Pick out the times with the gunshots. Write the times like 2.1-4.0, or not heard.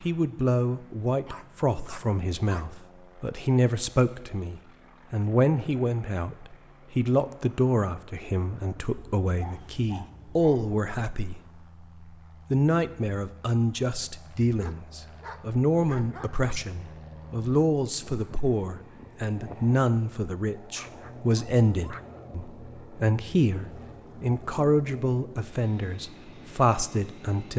not heard.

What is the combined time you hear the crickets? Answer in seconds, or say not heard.
not heard.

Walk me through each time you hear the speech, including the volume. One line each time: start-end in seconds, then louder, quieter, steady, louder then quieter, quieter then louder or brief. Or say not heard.
0.0-11.4 steady
12.5-27.5 steady.